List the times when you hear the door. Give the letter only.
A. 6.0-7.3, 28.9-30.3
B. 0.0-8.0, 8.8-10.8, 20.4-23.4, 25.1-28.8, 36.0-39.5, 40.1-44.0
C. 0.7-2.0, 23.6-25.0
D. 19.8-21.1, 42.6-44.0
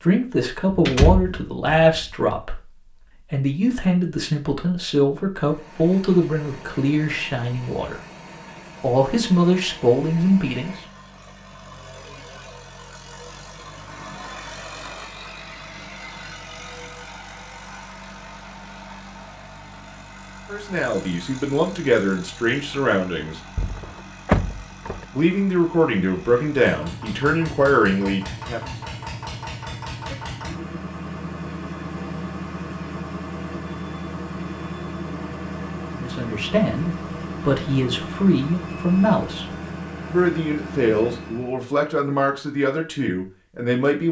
C.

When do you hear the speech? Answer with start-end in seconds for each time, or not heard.
0.0-8.0, 8.8-10.8, 20.4-23.4, 25.1-28.8, 36.0-39.5, 40.1-44.0.